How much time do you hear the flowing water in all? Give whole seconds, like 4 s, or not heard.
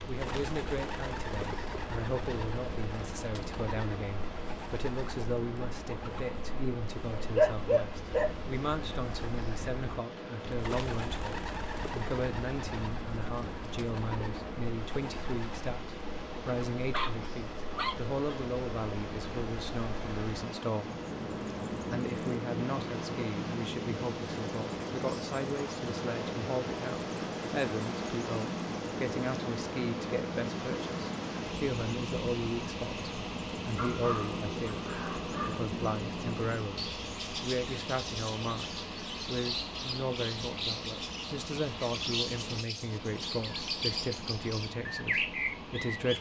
46 s.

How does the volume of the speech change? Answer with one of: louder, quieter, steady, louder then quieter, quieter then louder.
steady.